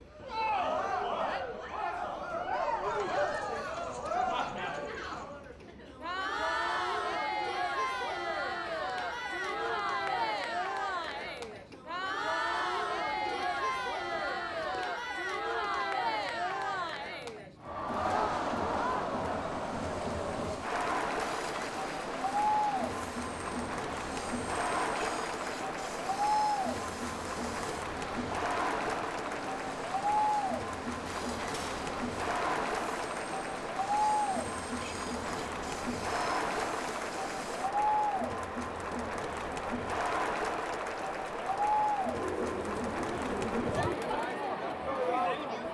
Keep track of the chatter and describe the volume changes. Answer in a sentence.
The loudness of the chatter stays about the same.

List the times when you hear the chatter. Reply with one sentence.
You can hear the chatter from 0.1 to 45.7 s.